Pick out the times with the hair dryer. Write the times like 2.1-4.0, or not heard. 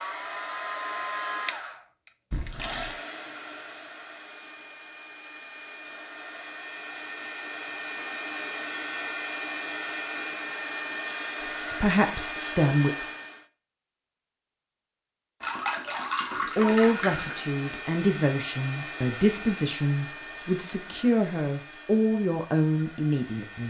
0.0-13.4, 16.4-23.6.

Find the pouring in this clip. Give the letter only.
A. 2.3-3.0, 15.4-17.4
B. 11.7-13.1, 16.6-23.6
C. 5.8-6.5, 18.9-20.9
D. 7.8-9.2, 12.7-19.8
A.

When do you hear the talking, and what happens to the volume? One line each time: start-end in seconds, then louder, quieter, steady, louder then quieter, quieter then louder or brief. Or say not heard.
11.7-13.1 brief
16.6-23.6 steady.